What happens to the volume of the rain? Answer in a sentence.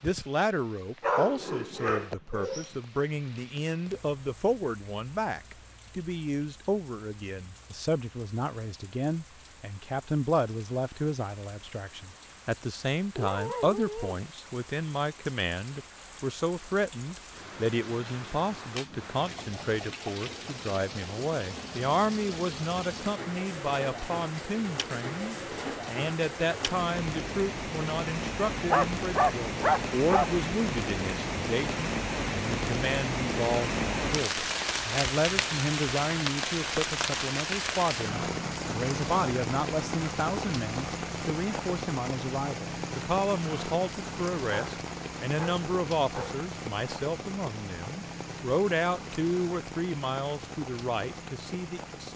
The volume of the rain goes up, then down.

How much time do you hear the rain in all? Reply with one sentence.
The rain can be heard for 52 seconds in total.